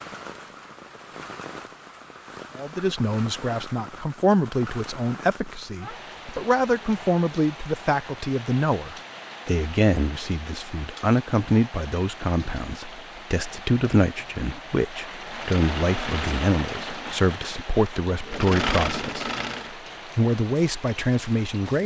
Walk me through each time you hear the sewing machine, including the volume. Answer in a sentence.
The sewing machine can be heard from 15.2 to 19.8 s, getting quieter then louder.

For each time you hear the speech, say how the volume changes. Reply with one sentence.
The speech can be heard from 2.5 to 19.3 s, at a steady volume; and briefly from 20.1 to 21.8 s.